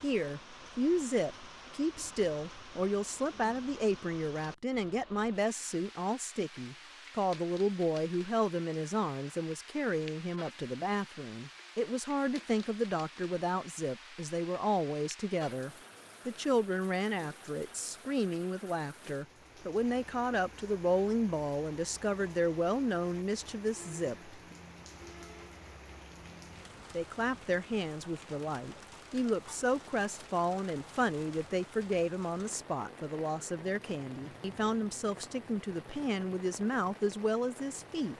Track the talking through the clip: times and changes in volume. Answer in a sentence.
You can hear the talking from 0.0 to 24.4 s, at a steady volume; and from 26.9 to 38.1 s, at a steady volume.